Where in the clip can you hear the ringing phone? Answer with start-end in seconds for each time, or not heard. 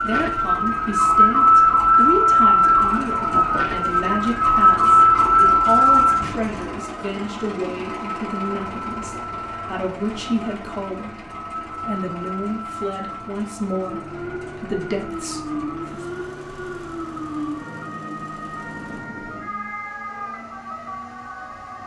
not heard.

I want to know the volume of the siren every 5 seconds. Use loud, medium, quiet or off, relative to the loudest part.
loud, loud, quiet, quiet, quiet.